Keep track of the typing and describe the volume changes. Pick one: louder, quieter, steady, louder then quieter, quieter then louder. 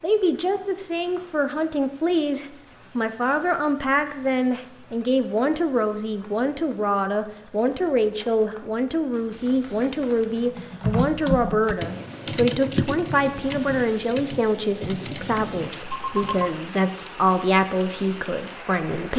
quieter.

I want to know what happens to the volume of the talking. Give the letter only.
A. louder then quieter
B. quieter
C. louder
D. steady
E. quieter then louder
D.